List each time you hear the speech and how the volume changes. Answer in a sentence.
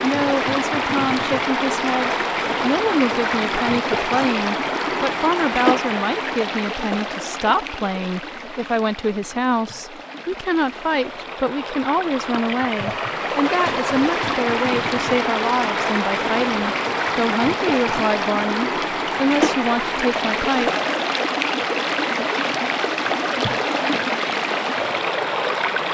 The speech can be heard from 0.0 to 20.7 s, at a steady volume.